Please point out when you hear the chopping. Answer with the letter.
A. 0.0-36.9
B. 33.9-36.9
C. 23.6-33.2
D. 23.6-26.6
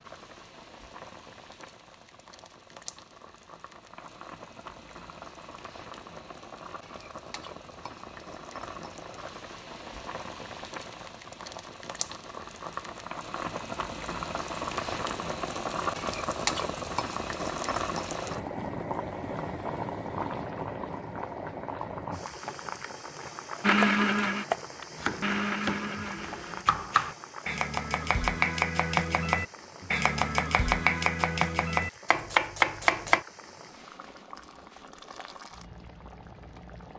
C.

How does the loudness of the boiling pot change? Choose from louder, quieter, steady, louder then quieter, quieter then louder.
louder then quieter.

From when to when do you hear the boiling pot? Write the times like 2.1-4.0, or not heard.
0.0-36.9.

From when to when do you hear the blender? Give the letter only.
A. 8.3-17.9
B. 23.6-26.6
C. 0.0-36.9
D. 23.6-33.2
B.